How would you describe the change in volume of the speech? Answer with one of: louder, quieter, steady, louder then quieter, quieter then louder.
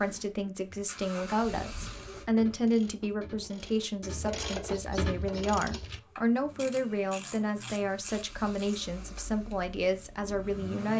steady.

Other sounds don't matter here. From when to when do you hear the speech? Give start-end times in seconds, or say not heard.
0.0-10.9.